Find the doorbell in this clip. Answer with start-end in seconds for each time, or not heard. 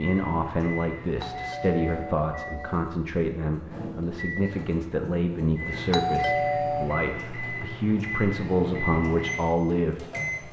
1.2-2.8, 5.9-6.9.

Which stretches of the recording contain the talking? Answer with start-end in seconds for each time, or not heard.
0.0-10.4.